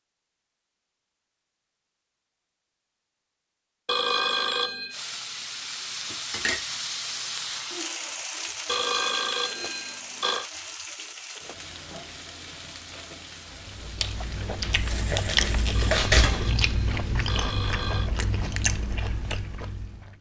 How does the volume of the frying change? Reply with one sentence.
The volume of the frying goes down.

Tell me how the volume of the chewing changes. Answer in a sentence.
The loudness of the chewing goes up, then down.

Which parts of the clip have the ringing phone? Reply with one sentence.
You can hear the ringing phone from 3.9 to 5.0 s, from 8.7 to 10.4 s and from 15.7 to 18.1 s.